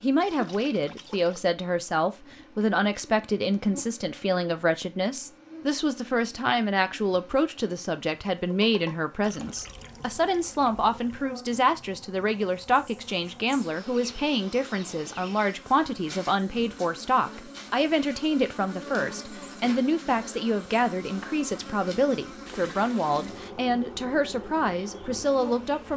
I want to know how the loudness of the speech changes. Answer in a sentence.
The loudness of the speech stays about the same.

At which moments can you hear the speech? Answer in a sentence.
You can hear the speech from 0.0 to 25.9 s.